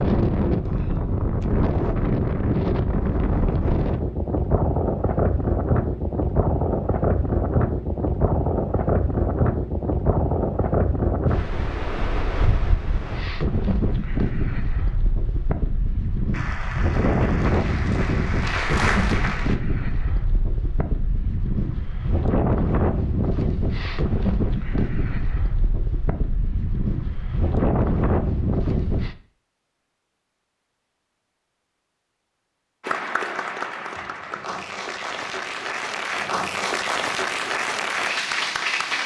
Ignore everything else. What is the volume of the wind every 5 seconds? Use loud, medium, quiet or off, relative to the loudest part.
loud, loud, loud, loud, loud, loud, off, off.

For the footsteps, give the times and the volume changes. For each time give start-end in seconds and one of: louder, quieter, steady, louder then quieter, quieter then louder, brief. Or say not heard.
not heard.